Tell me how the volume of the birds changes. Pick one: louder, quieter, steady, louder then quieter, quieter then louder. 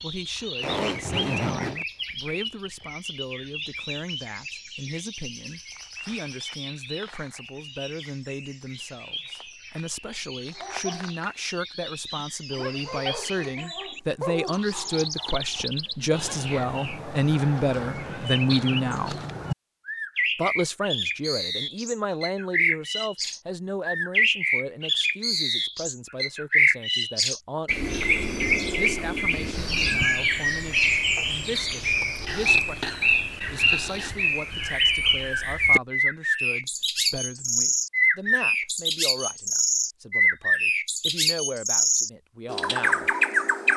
louder.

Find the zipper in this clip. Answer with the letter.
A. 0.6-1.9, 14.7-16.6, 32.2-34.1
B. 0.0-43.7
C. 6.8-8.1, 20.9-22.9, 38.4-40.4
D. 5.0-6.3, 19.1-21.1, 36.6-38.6
A.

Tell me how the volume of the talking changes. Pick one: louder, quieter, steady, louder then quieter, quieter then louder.
louder then quieter.